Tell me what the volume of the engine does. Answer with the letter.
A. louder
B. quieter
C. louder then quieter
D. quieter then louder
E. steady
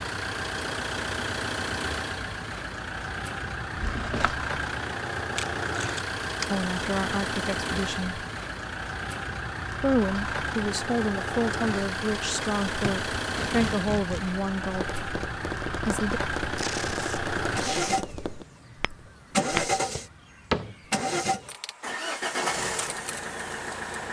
E.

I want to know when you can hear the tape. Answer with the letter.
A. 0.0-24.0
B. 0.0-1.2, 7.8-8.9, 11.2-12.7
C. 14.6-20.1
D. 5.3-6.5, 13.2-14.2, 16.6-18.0
D.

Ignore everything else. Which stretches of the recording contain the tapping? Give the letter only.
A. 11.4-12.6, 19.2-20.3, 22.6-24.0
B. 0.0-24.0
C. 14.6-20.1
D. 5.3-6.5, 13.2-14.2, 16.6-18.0
C.